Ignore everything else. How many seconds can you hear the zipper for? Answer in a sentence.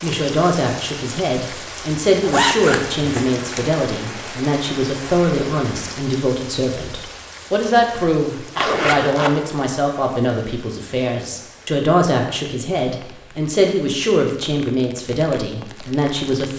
You can hear the zipper for 2 seconds altogether.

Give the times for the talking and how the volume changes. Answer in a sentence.
The talking can be heard from 0.0 to 16.5 s, at a steady volume.